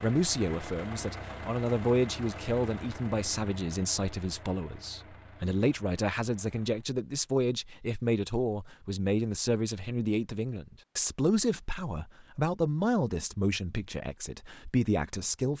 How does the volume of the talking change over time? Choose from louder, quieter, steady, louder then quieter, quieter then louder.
steady.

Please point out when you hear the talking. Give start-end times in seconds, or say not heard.
0.0-15.5.